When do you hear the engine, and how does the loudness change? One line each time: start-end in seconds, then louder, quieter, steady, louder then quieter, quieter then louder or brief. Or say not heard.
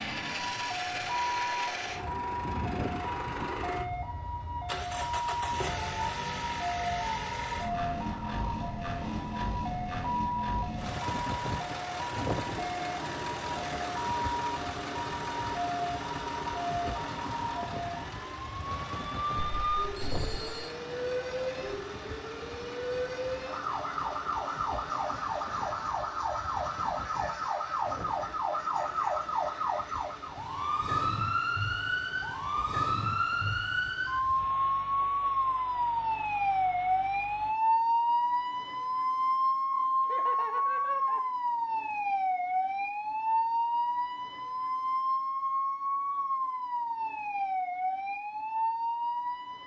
0.0-37.5 quieter.